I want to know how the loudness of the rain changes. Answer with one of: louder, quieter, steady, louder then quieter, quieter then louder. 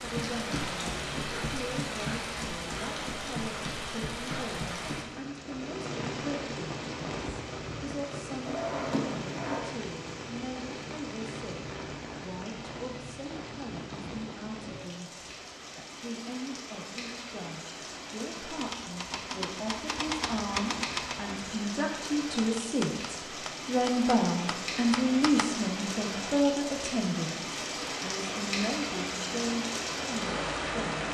quieter then louder.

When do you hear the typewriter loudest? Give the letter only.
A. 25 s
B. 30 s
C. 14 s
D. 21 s
D.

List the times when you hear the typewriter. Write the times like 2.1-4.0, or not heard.
18.4-25.4.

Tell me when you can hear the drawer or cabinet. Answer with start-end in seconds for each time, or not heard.
8.4-9.7.